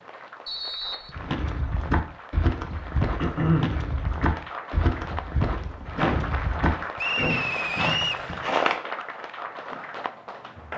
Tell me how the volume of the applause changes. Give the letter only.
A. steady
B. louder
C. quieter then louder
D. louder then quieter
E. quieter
B.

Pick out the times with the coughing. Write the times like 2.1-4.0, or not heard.
3.1-3.8, 6.0-8.5.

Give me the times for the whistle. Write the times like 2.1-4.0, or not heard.
0.5-1.1, 7.0-8.2.